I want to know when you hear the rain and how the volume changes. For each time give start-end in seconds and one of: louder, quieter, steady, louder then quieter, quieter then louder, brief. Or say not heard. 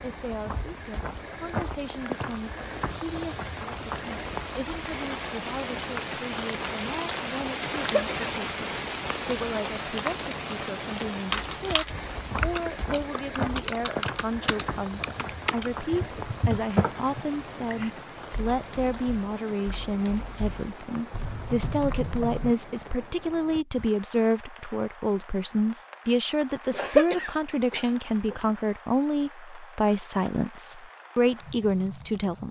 0.0-32.4 quieter.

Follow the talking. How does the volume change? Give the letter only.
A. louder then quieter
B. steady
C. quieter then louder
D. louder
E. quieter
D.